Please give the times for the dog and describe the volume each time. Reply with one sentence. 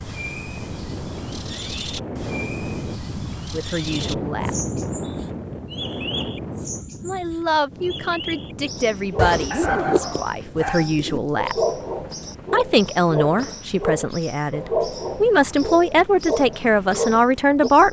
You can hear the dog from 8.9 to 17.7 s, at a steady volume.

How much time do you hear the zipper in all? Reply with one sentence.
You can hear the zipper for 2 seconds altogether.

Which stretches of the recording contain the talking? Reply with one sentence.
You can hear the talking from 3.5 to 4.6 s, from 7.0 to 11.6 s and from 12.5 to 17.8 s.